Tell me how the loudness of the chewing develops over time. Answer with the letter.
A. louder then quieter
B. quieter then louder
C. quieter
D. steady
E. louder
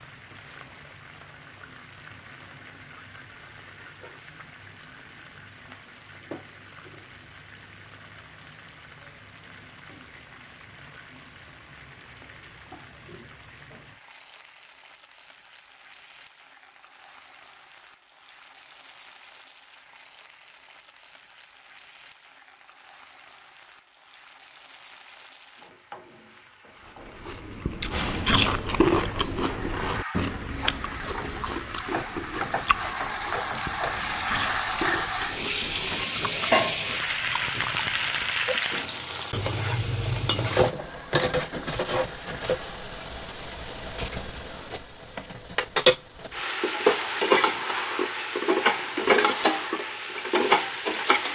C.